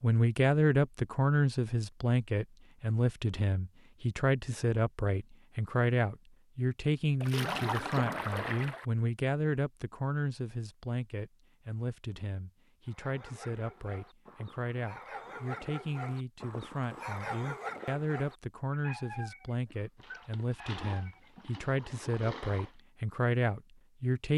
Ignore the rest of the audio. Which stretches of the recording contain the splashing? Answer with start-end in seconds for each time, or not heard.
7.2-8.8, 19.9-22.8.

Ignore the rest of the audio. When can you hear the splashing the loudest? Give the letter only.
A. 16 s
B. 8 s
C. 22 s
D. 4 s
B.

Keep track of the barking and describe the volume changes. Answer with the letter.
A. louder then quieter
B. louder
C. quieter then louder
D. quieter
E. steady
A.